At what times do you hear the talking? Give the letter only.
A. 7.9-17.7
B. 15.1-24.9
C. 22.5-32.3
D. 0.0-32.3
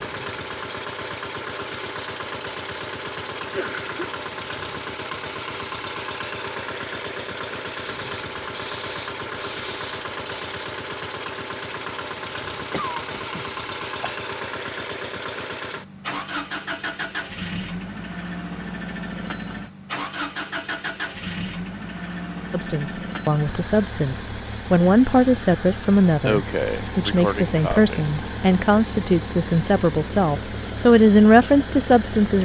C.